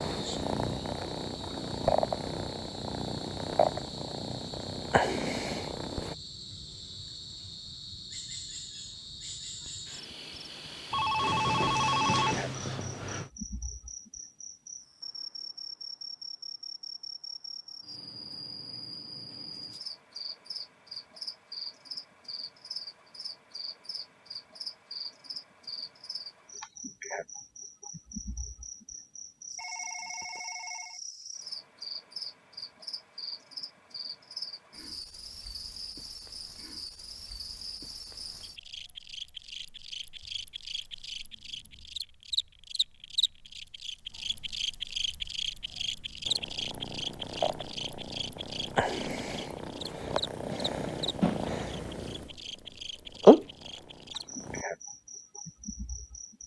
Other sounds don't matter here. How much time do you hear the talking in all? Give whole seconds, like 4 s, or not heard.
not heard.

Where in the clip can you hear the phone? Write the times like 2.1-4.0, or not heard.
10.9-13.3, 29.6-31.0.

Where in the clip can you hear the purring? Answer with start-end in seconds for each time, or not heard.
0.0-6.2, 46.2-54.6.